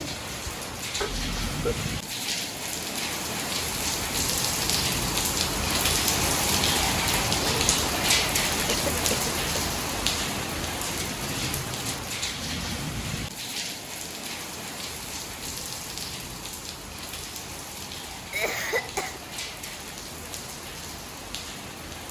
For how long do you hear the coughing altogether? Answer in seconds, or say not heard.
3 s.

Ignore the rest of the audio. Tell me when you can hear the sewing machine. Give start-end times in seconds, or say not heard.
not heard.